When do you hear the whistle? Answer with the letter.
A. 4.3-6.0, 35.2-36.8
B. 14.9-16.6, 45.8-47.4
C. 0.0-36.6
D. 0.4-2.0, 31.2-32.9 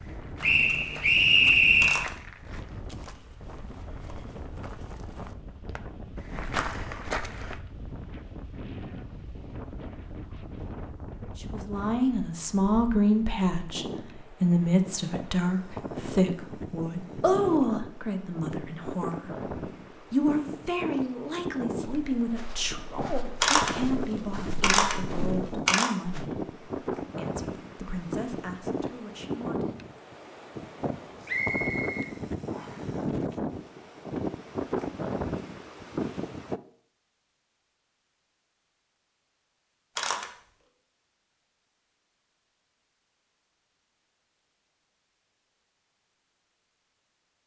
D.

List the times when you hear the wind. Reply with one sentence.
The wind can be heard from 0.0 to 36.6 s.